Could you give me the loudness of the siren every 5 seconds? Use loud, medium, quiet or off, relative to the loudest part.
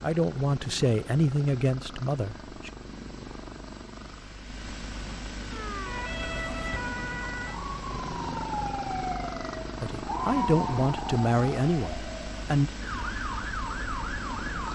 off, loud, loud.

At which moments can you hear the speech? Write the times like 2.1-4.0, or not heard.
0.0-2.7, 9.8-12.7.